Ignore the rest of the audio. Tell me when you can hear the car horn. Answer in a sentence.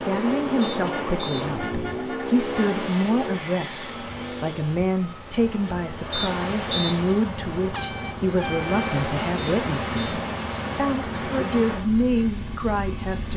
The car horn can be heard from 0.9 to 2.8 s and from 7.7 to 9.0 s.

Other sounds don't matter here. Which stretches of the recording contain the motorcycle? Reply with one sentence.
The motorcycle can be heard from 0.0 to 13.3 s.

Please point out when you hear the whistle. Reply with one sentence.
The whistle can be heard from 0.6 to 1.4 s, from 6.1 to 7.0 s and from 9.3 to 10.2 s.